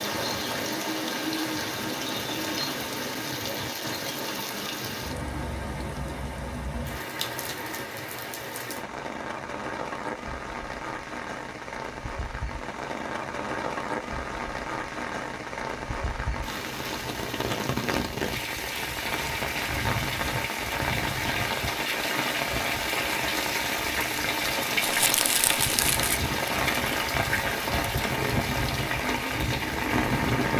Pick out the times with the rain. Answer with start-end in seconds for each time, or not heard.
0.0-30.5.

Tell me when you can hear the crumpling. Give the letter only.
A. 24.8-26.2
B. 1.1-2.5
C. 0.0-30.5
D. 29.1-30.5
A.